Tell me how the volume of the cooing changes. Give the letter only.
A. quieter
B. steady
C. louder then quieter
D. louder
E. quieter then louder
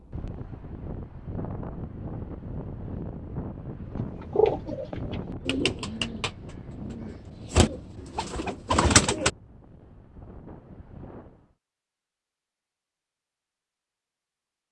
E.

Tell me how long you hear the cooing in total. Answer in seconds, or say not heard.
5 s.